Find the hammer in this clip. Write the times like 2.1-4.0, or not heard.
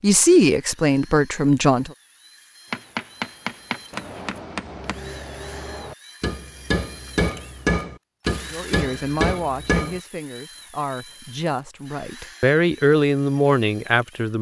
2.7-10.0.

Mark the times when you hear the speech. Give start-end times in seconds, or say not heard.
0.0-1.9, 8.5-14.3.